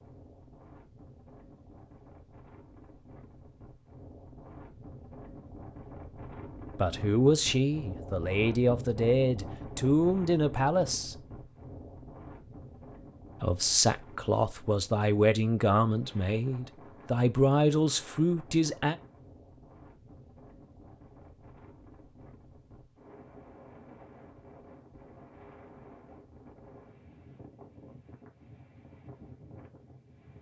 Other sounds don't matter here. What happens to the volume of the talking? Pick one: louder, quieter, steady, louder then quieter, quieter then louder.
steady.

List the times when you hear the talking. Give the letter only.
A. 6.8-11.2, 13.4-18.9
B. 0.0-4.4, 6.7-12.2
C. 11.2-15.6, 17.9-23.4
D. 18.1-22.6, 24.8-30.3
A.